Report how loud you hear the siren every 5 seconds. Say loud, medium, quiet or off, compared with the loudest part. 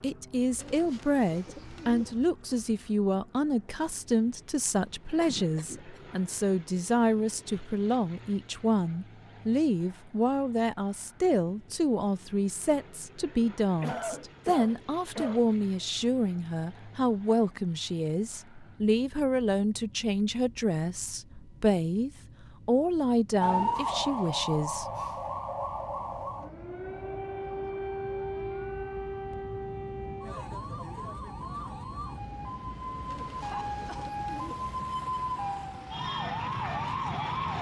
off, off, off, off, loud, medium, medium, loud.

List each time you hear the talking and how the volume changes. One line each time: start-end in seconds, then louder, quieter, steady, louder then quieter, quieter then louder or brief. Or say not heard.
0.0-24.9 steady.